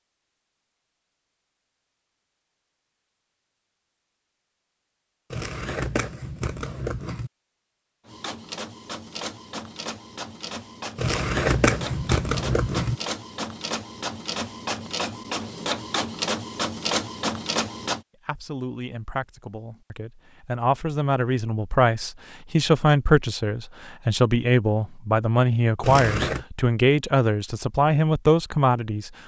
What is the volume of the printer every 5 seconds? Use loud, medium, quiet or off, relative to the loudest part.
off, medium, medium, loud, off, off.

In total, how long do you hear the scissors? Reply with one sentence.
You can hear the scissors for 5 seconds altogether.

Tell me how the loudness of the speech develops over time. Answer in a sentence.
The volume of the speech goes up.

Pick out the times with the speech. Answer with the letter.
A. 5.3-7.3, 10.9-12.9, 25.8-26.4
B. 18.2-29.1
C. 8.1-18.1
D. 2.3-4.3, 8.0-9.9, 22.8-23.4
B.